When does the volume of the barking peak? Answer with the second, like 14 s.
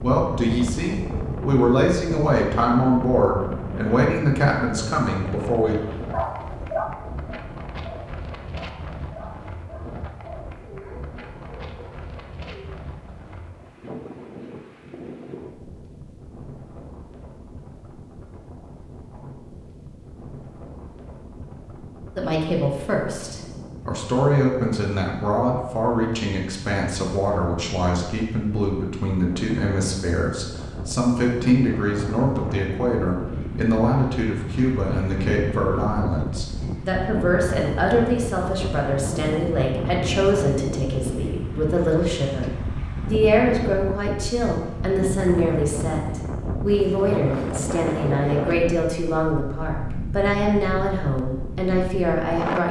7 s.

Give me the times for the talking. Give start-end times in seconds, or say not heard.
0.0-5.8, 22.1-52.6.